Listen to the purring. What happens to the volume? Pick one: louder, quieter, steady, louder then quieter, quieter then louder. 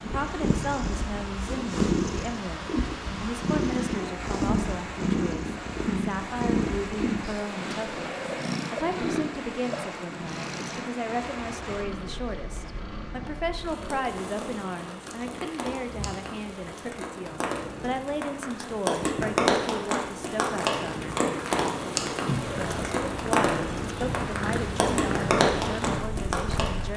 quieter then louder.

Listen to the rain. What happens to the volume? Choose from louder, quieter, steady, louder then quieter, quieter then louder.
louder.